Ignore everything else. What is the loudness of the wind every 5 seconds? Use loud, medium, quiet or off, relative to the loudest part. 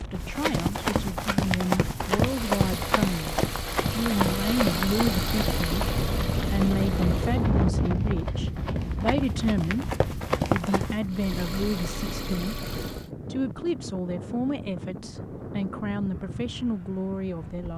medium, loud, medium, medium.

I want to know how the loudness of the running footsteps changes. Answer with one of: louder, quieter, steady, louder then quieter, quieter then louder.
quieter then louder.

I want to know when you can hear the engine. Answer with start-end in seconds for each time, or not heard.
2.1-7.5, 11.1-13.1.